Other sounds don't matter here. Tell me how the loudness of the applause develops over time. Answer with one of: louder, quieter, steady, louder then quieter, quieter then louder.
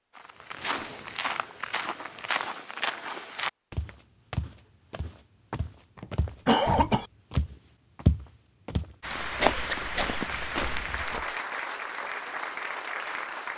steady.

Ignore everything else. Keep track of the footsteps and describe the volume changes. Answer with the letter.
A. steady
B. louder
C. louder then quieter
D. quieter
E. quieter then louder
E.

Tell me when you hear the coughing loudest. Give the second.
7 s.